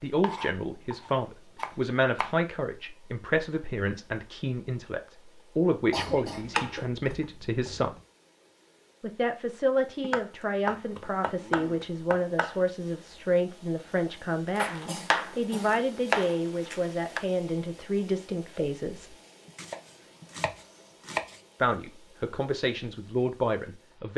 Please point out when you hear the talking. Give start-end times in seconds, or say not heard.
0.0-8.0, 9.0-19.1, 21.6-24.1.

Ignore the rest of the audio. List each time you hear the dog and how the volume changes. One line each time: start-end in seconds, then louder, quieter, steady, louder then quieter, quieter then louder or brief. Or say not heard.
not heard.